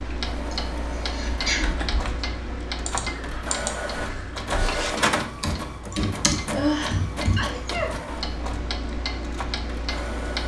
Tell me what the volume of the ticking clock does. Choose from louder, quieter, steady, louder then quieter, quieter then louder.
quieter then louder.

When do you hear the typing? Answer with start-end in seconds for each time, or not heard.
1.2-7.5.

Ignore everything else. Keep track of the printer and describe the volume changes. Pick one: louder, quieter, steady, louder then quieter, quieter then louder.
louder then quieter.